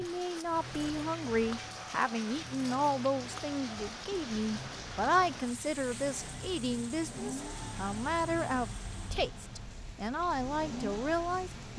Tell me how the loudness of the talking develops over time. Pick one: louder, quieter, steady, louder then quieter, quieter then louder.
steady.